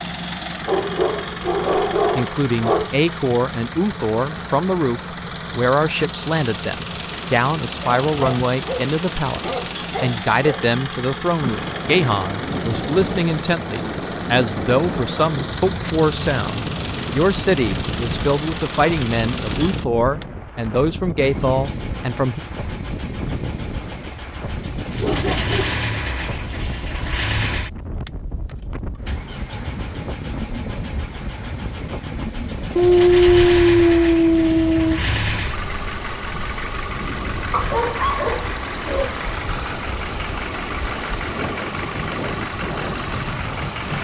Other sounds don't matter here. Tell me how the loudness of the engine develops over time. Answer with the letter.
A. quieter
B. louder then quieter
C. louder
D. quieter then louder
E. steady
E.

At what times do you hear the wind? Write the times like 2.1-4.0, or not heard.
11.4-43.9.